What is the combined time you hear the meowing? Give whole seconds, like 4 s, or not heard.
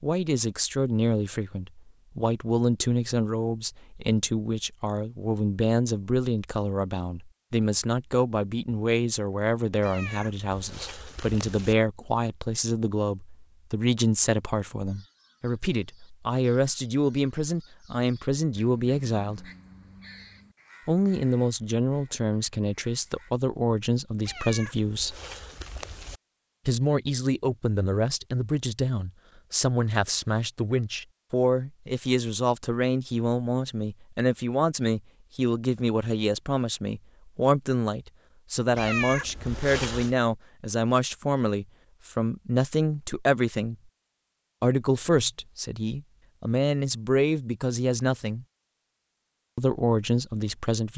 5 s.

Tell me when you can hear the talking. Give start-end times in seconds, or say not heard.
0.0-19.4, 20.9-25.1, 26.6-43.8, 44.6-48.5, 49.5-50.9.